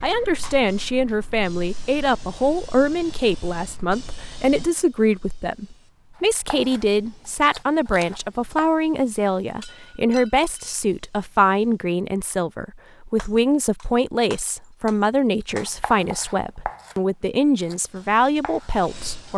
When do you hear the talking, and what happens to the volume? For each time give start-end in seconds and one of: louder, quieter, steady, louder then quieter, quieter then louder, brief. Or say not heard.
0.0-19.3 steady.